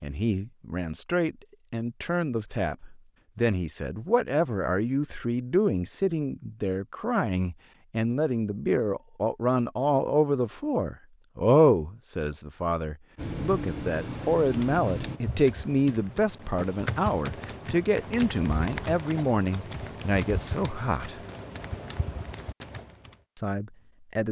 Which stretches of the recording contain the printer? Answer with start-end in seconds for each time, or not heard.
13.2-15.2.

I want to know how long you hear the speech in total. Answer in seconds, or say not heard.
22 s.